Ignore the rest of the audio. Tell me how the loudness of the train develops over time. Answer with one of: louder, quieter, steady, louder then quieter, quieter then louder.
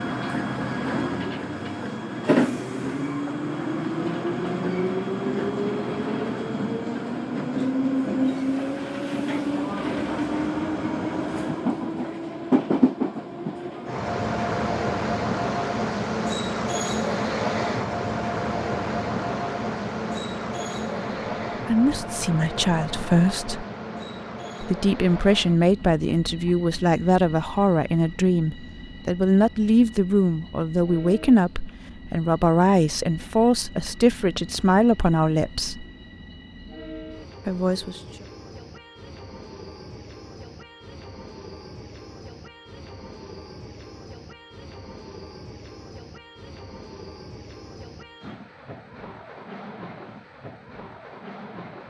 quieter.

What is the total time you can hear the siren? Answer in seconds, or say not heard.
not heard.